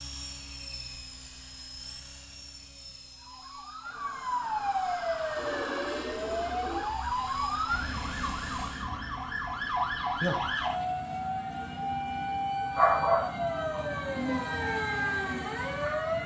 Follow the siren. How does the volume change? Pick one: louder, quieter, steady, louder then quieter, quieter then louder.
steady.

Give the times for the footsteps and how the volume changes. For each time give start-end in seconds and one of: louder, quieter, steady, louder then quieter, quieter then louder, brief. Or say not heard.
not heard.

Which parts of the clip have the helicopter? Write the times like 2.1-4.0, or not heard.
0.0-8.9.